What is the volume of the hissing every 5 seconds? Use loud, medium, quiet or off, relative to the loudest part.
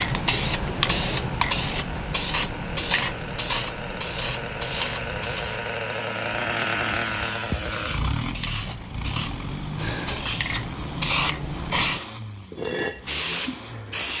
loud, medium, loud.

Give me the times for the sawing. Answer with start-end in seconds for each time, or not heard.
not heard.